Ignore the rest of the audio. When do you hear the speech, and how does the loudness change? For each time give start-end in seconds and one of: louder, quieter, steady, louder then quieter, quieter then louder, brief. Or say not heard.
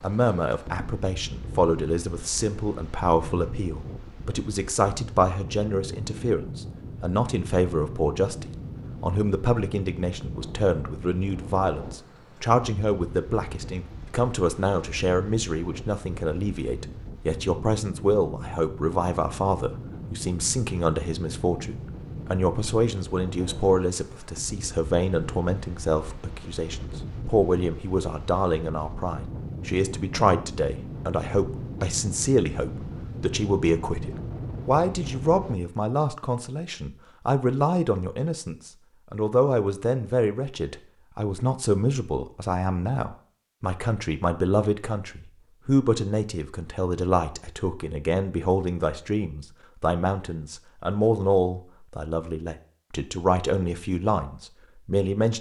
0.0-55.3 steady.